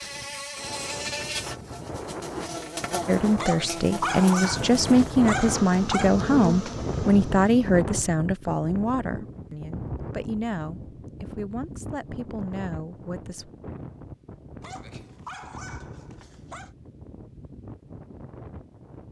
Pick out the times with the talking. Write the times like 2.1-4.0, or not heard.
3.0-13.5.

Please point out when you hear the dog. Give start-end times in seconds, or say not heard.
3.4-6.2, 14.6-16.7.